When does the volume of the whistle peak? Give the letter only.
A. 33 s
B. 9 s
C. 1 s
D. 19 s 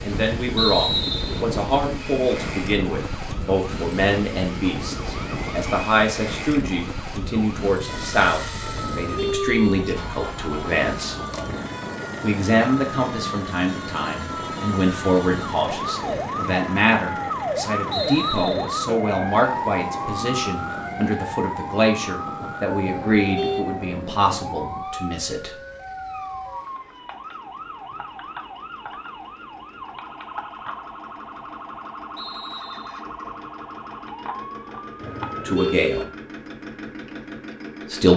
C.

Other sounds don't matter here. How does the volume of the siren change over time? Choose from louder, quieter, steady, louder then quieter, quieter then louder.
louder then quieter.